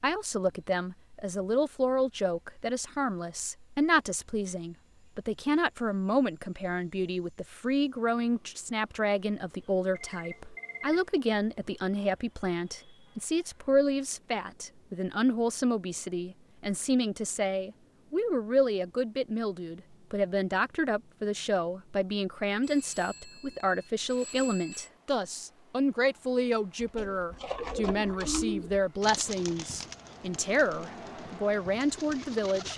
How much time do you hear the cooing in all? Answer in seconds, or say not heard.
6 s.